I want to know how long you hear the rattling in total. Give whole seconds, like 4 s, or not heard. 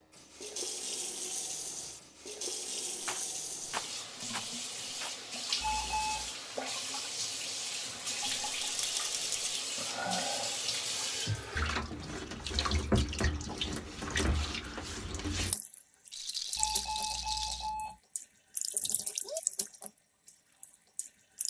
5 s.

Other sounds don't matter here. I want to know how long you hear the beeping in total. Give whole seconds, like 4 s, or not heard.
2 s.